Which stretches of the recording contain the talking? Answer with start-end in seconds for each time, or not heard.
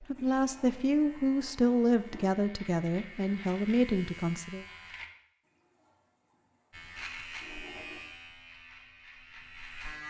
0.0-4.7.